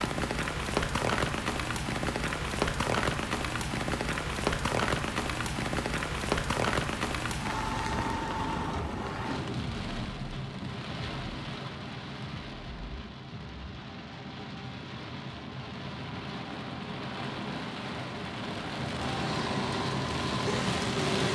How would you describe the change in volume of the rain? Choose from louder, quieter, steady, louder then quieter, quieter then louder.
quieter then louder.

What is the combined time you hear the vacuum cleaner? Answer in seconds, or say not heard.
2 s.